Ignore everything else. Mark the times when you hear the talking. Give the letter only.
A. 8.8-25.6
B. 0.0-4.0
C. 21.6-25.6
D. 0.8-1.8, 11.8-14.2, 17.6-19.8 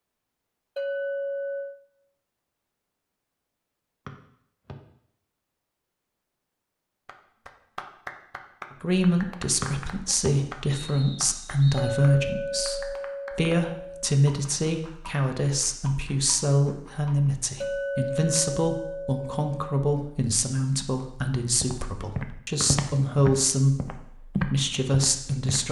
A.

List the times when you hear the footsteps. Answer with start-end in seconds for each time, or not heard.
21.6-25.6.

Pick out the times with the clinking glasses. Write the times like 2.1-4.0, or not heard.
0.8-1.8, 11.8-14.2, 17.6-19.8.